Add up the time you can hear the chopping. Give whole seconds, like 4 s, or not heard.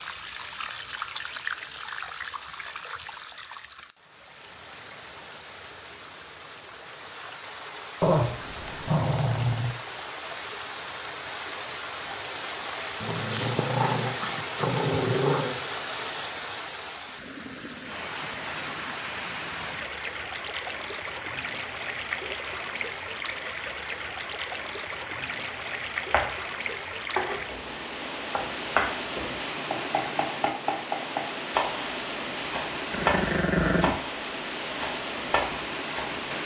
10 s.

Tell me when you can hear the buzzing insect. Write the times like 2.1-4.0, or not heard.
not heard.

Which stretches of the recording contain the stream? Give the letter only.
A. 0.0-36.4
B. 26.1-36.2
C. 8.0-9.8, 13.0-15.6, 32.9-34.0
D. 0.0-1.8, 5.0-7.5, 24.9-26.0
A.